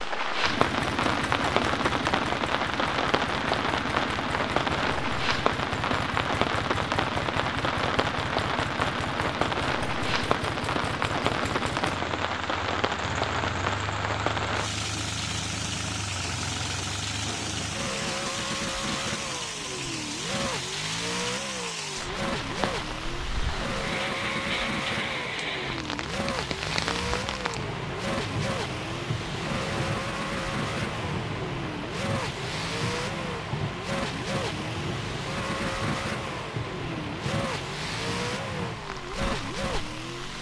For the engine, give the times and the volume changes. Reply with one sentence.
You can hear the engine from 0.0 to 40.3 s, at a steady volume.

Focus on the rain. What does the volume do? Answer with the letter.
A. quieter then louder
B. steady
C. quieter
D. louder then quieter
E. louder
C.